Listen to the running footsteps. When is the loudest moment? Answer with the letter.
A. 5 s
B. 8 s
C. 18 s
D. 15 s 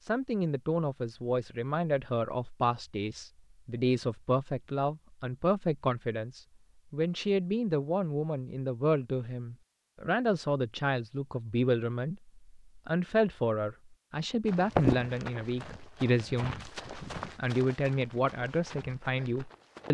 D.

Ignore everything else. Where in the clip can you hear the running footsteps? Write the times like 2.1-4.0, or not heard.
14.4-19.9.